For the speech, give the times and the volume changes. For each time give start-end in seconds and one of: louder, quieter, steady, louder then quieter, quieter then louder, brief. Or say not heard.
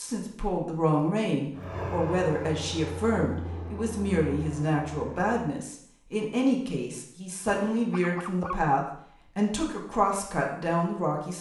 0.0-11.3 steady.